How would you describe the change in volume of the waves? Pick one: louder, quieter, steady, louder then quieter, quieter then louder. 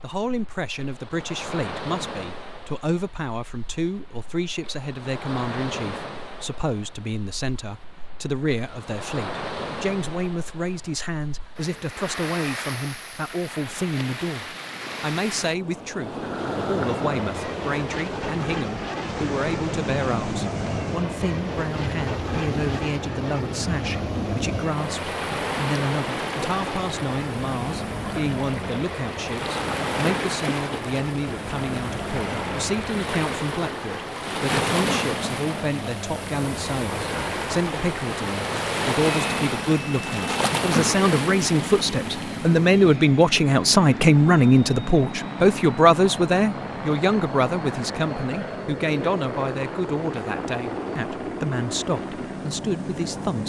louder.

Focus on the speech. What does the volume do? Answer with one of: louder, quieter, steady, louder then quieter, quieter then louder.
louder.